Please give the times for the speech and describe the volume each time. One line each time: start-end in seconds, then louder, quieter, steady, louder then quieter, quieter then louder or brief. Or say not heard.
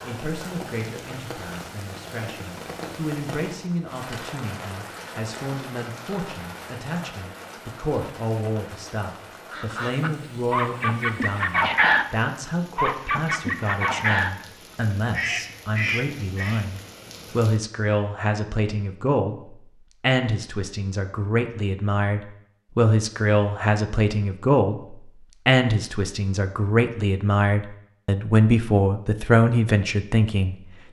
0.1-30.6 louder.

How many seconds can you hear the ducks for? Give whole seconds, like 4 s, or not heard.
6 s.